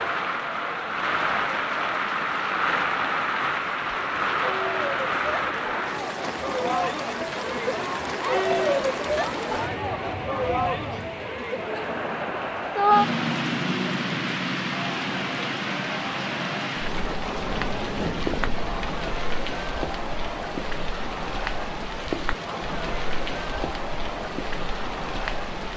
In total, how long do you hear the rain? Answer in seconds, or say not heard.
26 s.